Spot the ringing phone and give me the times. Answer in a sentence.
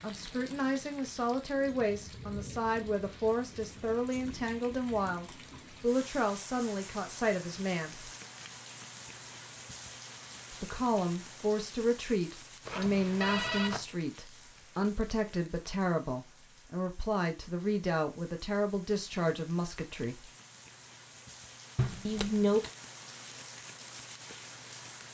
The ringing phone can be heard from 12.7 to 13.8 s.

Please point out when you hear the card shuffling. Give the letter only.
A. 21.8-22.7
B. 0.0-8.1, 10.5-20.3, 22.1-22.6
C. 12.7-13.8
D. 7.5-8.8
A.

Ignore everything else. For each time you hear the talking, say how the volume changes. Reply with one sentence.
The talking can be heard from 0.0 to 8.1 s, at a steady volume; from 10.5 to 20.3 s, at a steady volume; and briefly from 22.1 to 22.6 s.